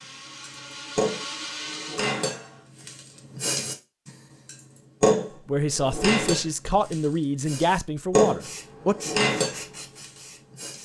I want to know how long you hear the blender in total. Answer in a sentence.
The blender can be heard for 3 seconds in total.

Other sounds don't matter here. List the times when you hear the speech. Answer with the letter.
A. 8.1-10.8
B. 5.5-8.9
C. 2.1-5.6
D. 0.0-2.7
B.